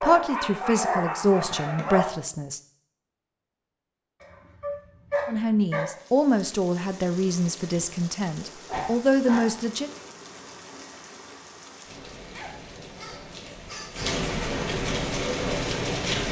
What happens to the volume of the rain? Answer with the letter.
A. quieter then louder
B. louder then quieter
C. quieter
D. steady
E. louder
E.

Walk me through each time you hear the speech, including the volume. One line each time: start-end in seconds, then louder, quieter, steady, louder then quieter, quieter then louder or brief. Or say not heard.
0.0-2.6 brief
5.2-9.9 quieter then louder.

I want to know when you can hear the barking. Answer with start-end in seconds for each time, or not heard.
0.0-2.0, 4.2-5.8, 8.6-10.5, 12.3-14.2.